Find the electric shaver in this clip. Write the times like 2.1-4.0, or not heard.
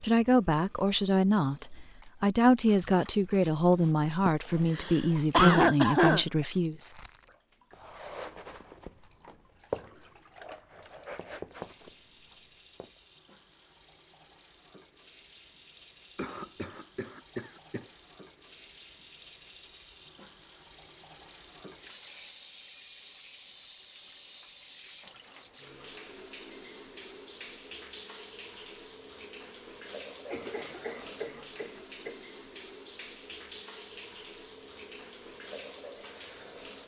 not heard.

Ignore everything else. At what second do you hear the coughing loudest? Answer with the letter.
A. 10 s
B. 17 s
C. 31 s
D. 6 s
D.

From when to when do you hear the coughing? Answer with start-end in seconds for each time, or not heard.
4.2-6.2, 16.1-17.9, 30.2-32.1.